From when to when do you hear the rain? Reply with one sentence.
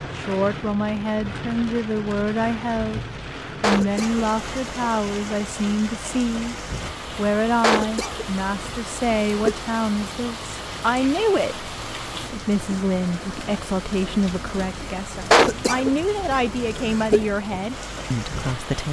You can hear the rain from 0.0 to 18.8 s.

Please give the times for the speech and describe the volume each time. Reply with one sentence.
You can hear the speech briefly from 0.1 to 3.0 s; briefly from 3.6 to 6.5 s; and from 7.2 to 18.8 s, at a steady volume.